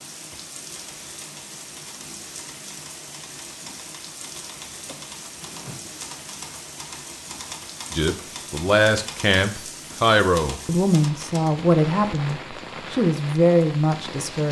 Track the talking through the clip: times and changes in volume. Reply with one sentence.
You can hear the talking from 7.9 to 14.4 s, at a steady volume.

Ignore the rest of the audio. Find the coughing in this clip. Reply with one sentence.
The coughing can be heard from 4.8 to 6.0 s.